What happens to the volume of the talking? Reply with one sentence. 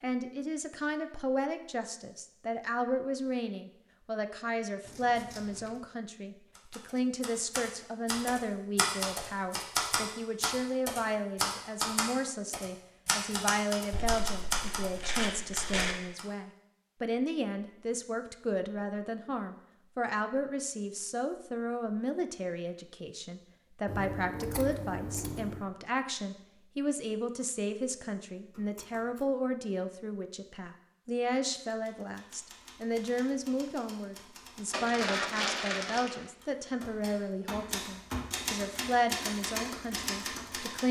The volume of the talking stays about the same.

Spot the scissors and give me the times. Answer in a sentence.
The scissors can be heard from 4.8 to 5.8 s, from 23.9 to 25.7 s and from 28.5 to 29.2 s.